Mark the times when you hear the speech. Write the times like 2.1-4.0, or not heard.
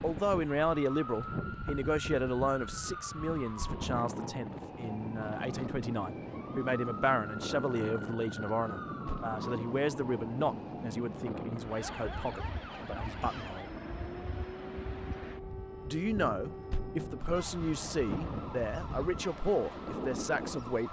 0.0-13.7, 15.8-20.8.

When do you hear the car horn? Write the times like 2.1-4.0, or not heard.
not heard.